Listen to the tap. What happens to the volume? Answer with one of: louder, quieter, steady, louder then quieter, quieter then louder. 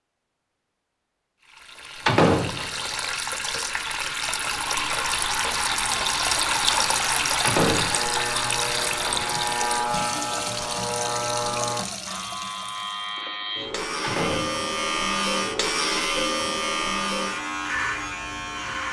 louder then quieter.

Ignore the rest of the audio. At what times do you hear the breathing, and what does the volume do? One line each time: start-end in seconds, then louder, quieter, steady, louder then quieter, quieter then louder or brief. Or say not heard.
not heard.